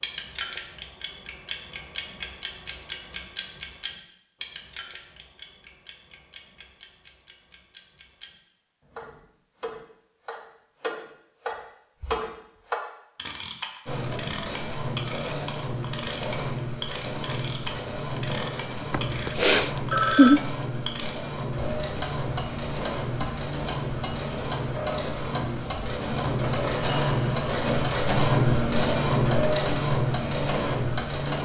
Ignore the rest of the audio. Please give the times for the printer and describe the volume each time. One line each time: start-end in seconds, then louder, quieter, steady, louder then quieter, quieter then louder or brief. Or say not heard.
13.8-31.4 louder.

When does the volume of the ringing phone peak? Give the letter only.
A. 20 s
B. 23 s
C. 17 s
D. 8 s
A.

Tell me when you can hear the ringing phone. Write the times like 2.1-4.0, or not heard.
18.9-20.4.